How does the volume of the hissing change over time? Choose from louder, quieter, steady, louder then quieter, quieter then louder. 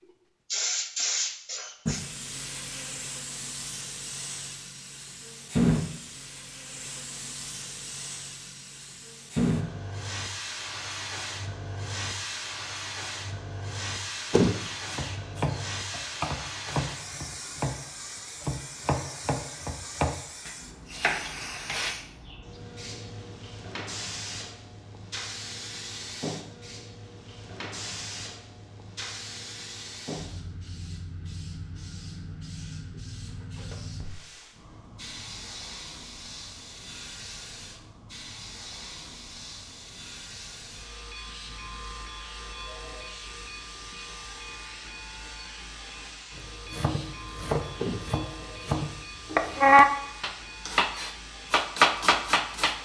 quieter.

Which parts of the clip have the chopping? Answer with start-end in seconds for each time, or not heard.
14.9-21.9, 46.7-52.7.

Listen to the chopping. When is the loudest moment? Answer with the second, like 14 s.
50 s.